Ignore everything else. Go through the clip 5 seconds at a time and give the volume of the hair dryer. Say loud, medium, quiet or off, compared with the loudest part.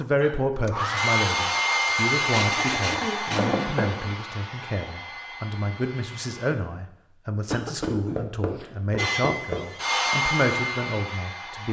loud, medium, loud.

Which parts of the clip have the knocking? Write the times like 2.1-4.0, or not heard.
3.4-4.2, 7.8-9.6.